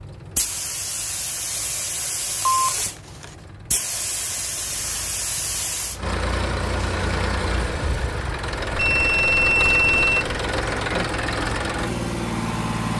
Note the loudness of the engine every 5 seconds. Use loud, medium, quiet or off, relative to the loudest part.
quiet, loud, loud.